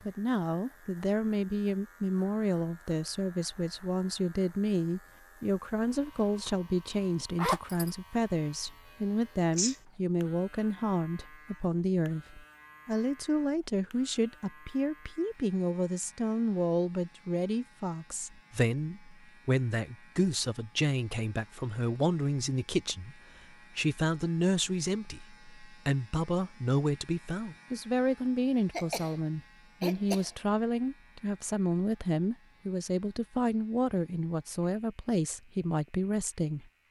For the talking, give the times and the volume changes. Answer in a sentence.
The talking can be heard from 0.1 to 36.6 s, at a steady volume.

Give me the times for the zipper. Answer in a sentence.
You can hear the zipper from 7.3 to 7.9 s.